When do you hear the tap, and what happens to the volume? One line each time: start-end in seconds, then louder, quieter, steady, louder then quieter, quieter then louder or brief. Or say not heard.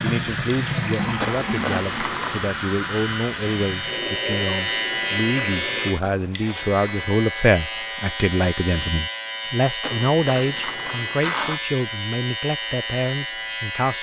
0.0-6.0 quieter.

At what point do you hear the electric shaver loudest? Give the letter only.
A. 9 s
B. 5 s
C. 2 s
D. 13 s
B.